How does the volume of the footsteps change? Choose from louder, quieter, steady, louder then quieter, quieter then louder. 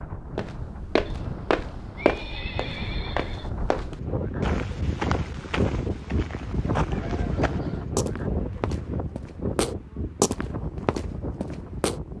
quieter then louder.